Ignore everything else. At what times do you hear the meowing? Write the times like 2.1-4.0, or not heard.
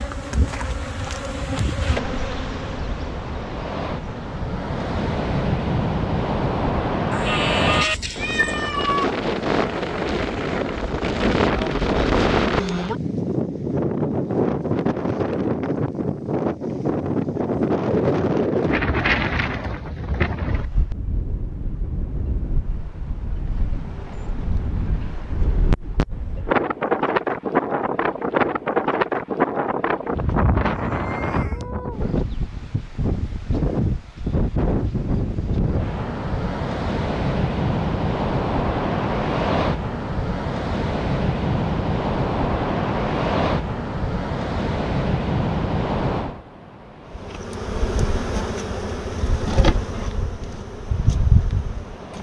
7.1-9.1, 30.7-31.7.